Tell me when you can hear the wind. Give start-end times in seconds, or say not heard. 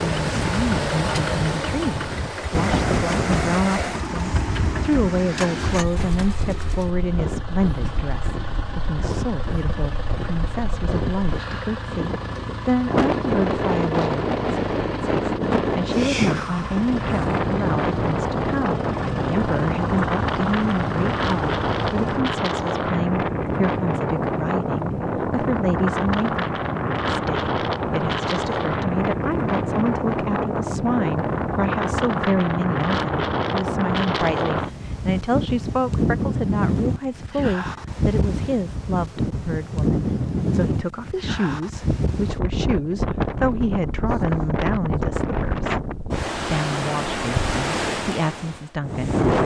0.0-49.4.